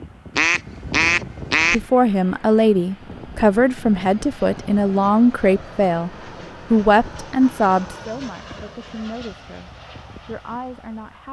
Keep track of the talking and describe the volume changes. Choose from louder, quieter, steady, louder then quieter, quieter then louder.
quieter.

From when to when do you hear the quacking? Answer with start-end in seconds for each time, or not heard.
0.3-1.8.